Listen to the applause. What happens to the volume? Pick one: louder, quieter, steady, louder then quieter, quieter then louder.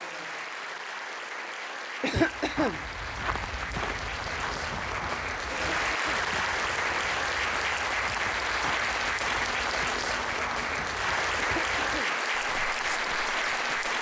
louder.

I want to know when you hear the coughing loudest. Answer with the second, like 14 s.
2 s.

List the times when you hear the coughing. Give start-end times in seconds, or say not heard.
2.0-2.8, 5.5-6.3, 11.3-12.2.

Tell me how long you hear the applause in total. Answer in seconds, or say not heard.
14 s.